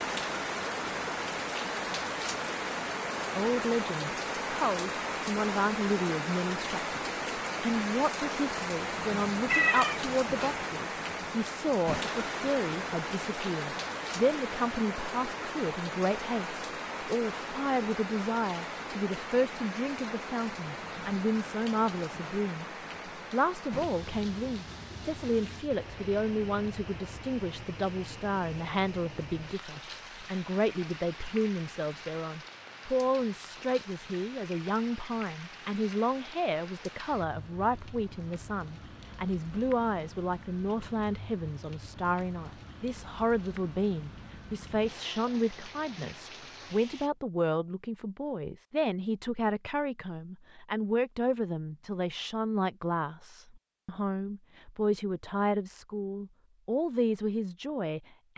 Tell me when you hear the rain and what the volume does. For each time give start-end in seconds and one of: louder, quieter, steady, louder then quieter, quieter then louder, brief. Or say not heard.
0.0-47.1 quieter.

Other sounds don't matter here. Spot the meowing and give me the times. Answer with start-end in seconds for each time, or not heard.
9.4-10.6.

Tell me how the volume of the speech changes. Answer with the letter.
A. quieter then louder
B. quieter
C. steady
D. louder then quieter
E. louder
C.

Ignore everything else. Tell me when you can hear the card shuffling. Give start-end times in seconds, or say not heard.
not heard.